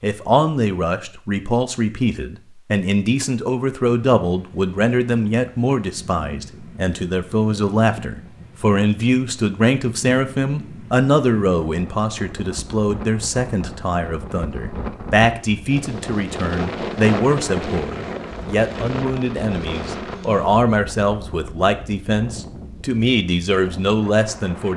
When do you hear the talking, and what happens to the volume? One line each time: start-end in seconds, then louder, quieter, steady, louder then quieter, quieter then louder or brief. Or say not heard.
0.0-24.7 steady.